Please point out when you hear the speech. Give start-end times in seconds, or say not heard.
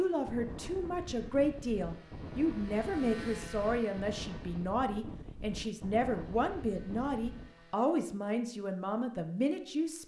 0.0-10.0.